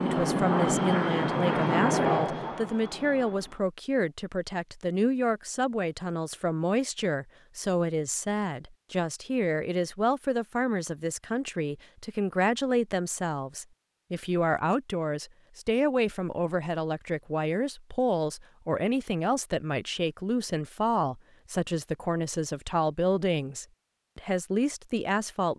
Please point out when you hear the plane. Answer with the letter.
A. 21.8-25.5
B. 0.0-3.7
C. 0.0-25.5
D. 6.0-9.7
B.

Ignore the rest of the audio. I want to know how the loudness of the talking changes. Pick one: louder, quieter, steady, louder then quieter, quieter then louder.
steady.